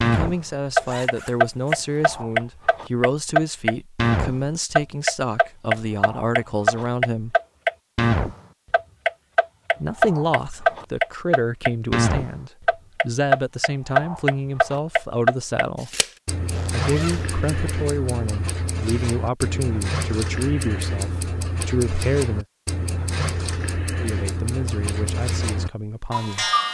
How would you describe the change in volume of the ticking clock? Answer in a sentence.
The volume of the ticking clock goes down.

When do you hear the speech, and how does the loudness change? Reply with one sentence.
The speech can be heard from 0.0 to 7.3 s, at a steady volume; from 9.8 to 15.9 s, at a steady volume; from 16.7 to 22.4 s, at a steady volume; and briefly from 23.9 to 26.5 s.